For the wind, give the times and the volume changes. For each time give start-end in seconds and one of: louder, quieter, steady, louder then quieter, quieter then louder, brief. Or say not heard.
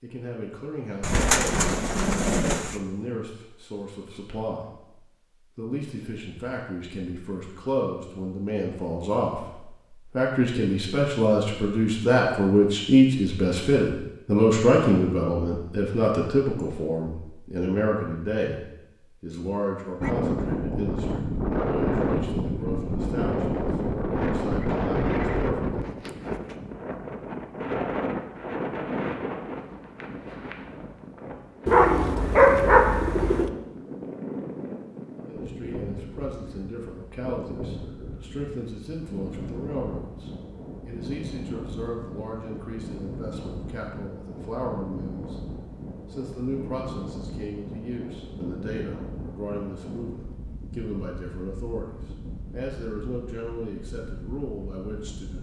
20.0-55.3 quieter.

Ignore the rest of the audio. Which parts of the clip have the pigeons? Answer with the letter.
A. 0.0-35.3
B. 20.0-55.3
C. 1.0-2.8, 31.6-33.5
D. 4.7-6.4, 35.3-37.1
C.